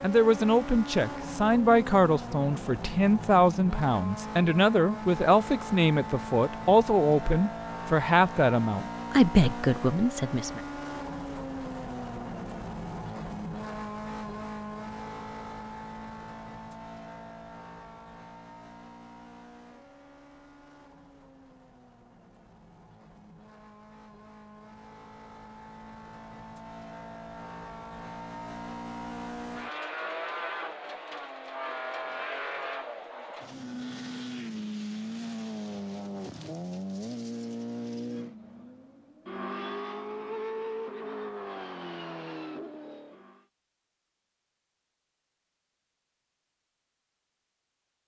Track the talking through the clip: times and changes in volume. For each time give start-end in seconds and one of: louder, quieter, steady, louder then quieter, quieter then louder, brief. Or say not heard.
0.0-10.6 steady.